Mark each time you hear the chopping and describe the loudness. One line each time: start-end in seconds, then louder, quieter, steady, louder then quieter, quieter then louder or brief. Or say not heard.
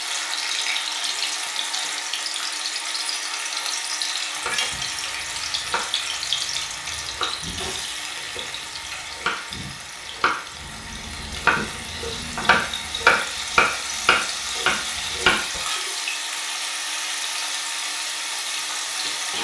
4.5-15.6 louder.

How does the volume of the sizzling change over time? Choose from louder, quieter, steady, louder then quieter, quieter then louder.
quieter then louder.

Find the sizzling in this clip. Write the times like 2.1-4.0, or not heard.
0.0-19.3.